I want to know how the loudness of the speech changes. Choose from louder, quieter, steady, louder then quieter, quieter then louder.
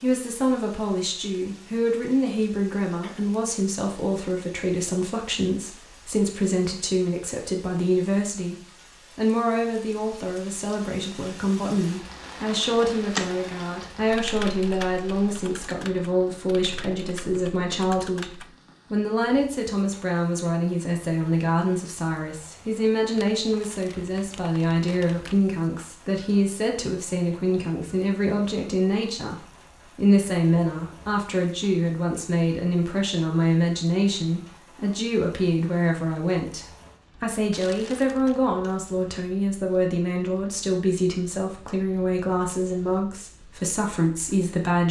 steady.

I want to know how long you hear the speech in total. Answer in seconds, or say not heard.
44 s.